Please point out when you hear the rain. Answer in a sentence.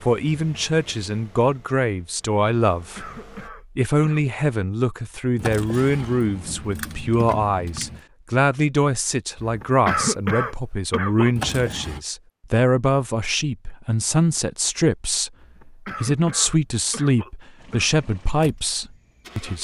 You can't hear the rain here.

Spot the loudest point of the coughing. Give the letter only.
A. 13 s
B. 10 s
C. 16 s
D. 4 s
B.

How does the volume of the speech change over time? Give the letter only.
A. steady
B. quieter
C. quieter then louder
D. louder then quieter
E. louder
A.